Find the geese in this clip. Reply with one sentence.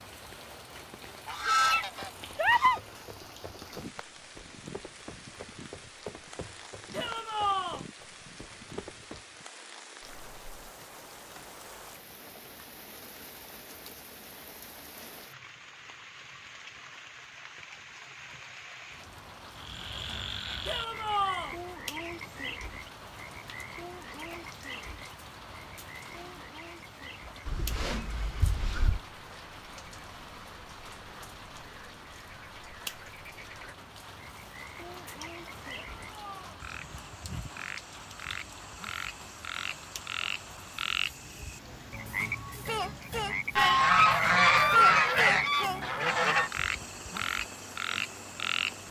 You can hear the geese from 1.2 to 2.8 s, from 27.4 to 29.0 s and from 43.5 to 46.5 s.